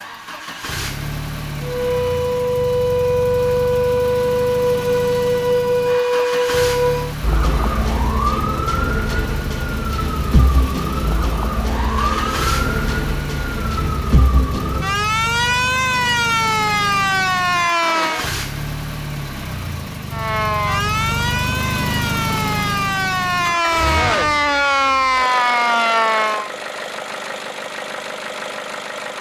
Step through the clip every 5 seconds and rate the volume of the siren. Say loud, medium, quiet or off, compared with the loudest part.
loud, loud, medium, loud, loud, loud.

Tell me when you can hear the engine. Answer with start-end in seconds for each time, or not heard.
0.0-29.1.